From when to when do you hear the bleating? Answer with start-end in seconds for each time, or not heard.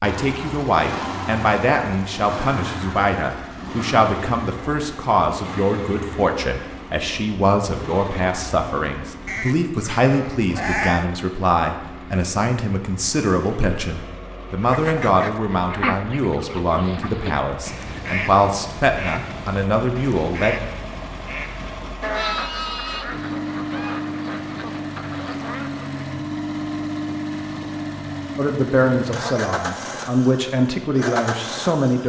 9.2-11.1, 22.0-23.1.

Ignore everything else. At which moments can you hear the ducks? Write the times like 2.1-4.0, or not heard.
14.6-26.1.